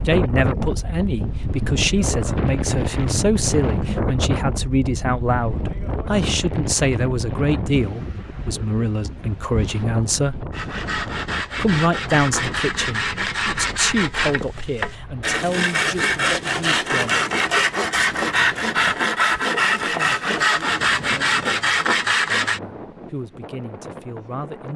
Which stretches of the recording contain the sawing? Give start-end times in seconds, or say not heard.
10.5-22.6.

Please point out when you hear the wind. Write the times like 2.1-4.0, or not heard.
0.0-24.7.